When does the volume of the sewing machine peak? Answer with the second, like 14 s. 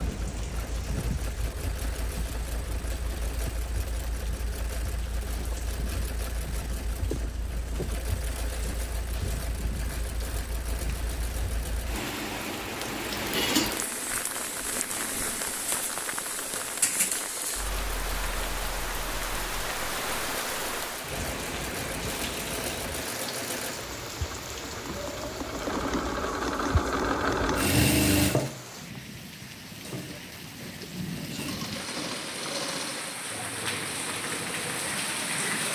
28 s.